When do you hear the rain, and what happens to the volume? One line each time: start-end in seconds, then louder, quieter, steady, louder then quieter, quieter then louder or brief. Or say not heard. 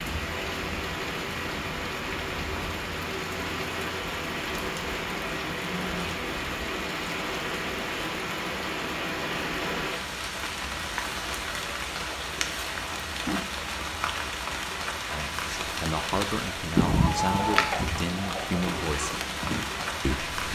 0.0-20.5 steady.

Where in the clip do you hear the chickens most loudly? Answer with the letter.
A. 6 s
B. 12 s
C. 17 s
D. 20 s
C.